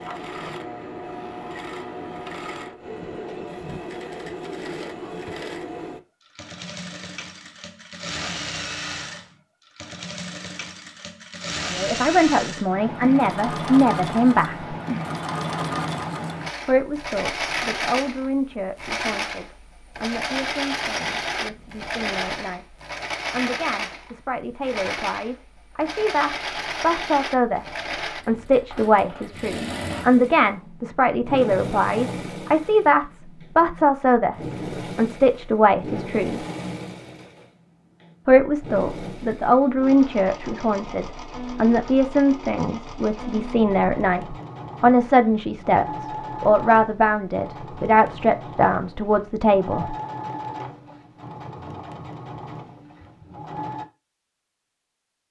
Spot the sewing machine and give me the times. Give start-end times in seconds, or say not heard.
0.0-53.9.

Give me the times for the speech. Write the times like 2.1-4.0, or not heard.
11.7-14.8, 16.6-36.5, 38.2-50.0.